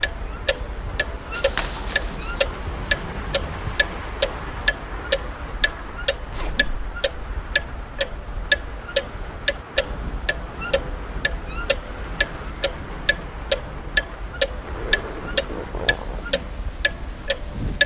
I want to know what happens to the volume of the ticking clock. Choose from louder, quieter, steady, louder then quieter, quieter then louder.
steady.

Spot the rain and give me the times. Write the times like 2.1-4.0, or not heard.
0.0-17.8.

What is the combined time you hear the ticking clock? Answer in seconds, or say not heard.
18 s.